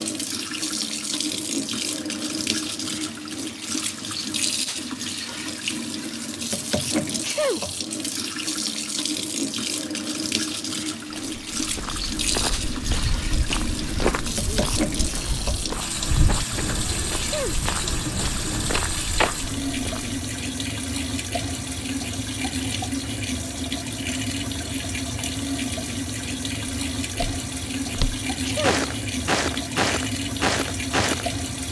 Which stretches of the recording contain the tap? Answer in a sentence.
The tap can be heard from 0.0 to 31.6 s.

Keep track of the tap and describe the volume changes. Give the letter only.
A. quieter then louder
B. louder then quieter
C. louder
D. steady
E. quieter
D.